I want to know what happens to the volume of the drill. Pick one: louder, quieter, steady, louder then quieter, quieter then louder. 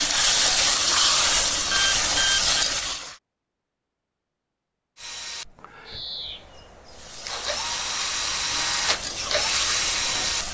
quieter then louder.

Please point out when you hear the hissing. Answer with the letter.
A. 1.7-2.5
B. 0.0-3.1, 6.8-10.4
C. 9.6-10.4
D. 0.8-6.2
B.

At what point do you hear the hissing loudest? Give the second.
1 s.